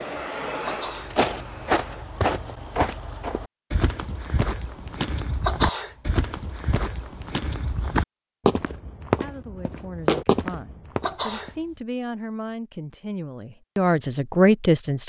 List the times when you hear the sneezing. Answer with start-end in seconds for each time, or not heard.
0.7-1.2, 5.4-6.2, 11.0-11.8.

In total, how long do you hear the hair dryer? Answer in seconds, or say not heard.
2 s.